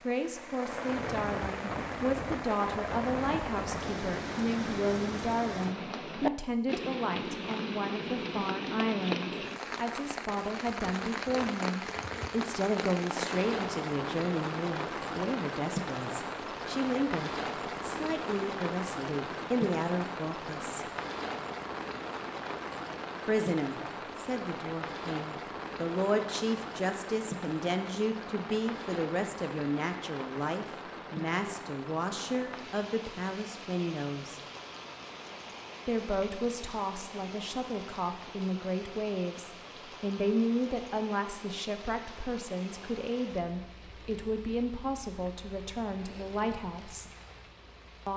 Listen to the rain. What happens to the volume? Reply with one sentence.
The volume of the rain goes down.